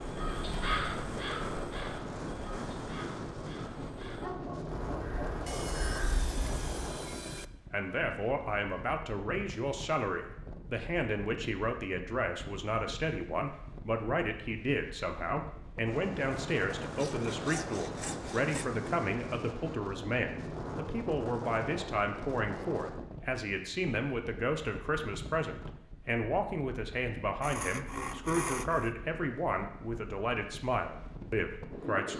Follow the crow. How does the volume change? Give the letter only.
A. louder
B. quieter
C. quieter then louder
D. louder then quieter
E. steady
C.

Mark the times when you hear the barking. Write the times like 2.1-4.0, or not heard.
4.0-5.8.